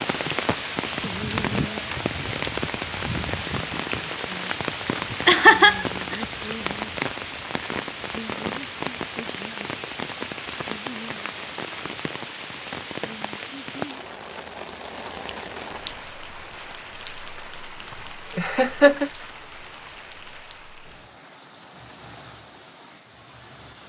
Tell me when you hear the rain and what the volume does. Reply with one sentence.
You can hear the rain from 0.0 to 23.8 s, getting quieter.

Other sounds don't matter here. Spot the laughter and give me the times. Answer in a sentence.
The laughter can be heard from 5.2 to 6.2 s and from 18.4 to 19.1 s.